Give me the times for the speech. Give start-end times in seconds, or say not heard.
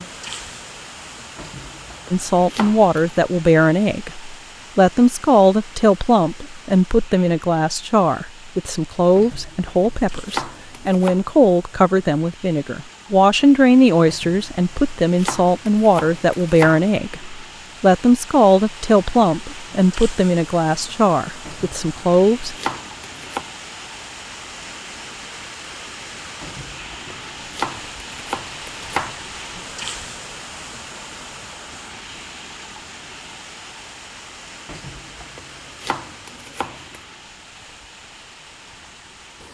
2.1-22.6.